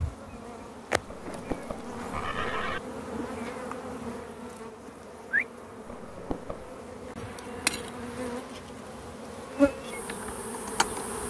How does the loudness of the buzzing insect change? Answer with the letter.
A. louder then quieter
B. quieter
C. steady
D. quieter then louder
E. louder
E.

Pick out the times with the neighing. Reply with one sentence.
The neighing can be heard from 1.1 to 2.8 s and from 5.8 to 6.7 s.